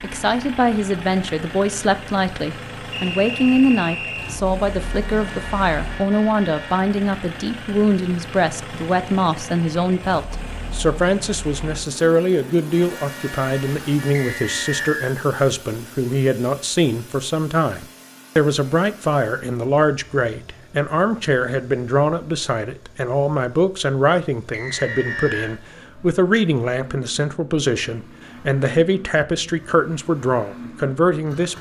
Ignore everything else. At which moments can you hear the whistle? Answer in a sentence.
You can hear the whistle from 2.9 to 4.4 s, from 14.2 to 15.2 s and from 24.5 to 25.6 s.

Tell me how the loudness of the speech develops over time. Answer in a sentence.
The loudness of the speech stays about the same.